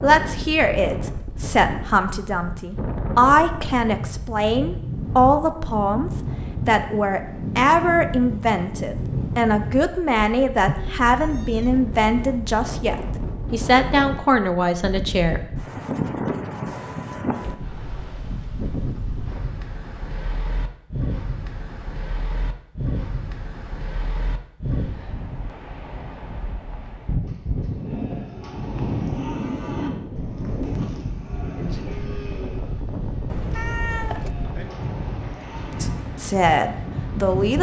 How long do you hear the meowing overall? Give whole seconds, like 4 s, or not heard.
2 s.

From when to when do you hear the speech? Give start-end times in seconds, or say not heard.
0.0-15.4, 35.8-37.5.